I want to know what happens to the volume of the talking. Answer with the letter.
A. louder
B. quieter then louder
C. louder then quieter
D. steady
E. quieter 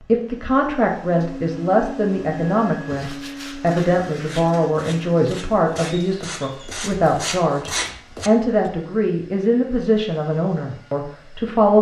D.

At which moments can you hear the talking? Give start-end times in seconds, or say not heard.
0.1-11.7.